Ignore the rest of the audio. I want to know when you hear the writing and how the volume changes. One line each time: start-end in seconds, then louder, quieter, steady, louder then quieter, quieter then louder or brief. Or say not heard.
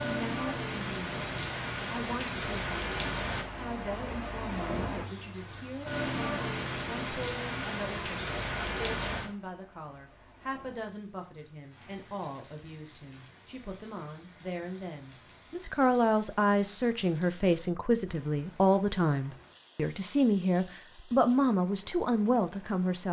not heard.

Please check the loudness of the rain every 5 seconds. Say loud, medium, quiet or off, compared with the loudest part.
loud, loud, quiet, quiet, quiet.